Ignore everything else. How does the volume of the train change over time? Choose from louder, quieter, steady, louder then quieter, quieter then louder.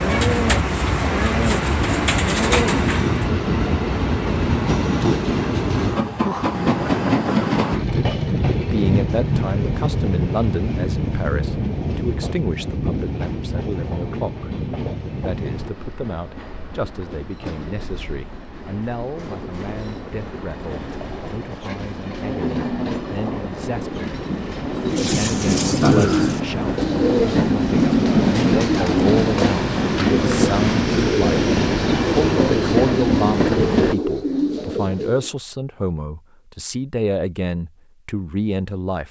quieter then louder.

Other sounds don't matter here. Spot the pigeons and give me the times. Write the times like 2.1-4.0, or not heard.
0.0-3.3, 24.8-35.3.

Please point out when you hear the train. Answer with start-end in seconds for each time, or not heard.
0.0-34.0.